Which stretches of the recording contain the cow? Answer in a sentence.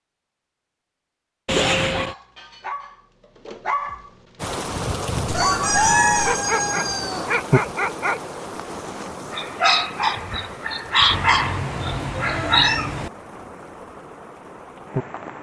You can't hear the cow here.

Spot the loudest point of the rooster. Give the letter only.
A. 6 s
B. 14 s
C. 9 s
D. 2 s
A.